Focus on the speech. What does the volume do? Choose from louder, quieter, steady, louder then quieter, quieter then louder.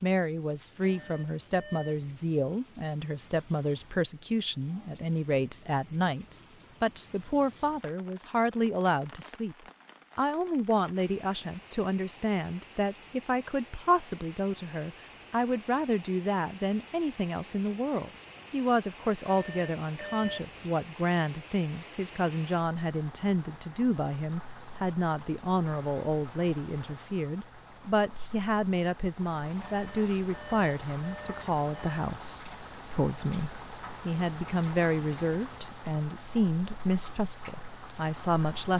steady.